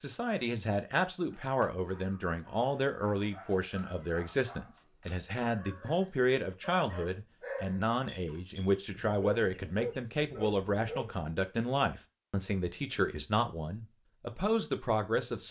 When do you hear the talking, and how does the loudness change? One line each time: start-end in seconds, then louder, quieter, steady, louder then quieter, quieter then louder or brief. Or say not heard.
0.0-15.4 steady.